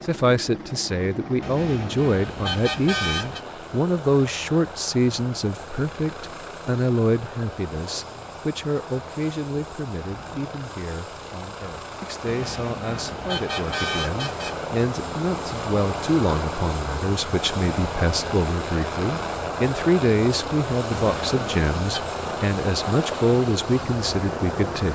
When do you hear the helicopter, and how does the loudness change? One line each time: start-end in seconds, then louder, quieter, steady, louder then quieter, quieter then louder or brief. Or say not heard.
0.0-24.9 louder.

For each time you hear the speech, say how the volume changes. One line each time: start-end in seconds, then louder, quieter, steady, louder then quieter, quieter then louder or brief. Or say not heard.
0.1-24.9 quieter then louder.